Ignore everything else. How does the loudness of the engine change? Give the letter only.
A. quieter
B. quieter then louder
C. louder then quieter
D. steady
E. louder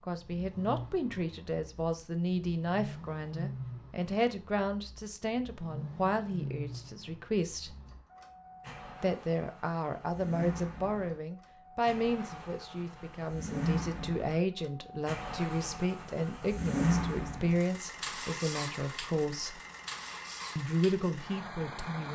C.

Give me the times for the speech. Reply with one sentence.
The speech can be heard from 0.1 to 7.8 s, from 9.0 to 19.6 s and from 20.6 to 22.1 s.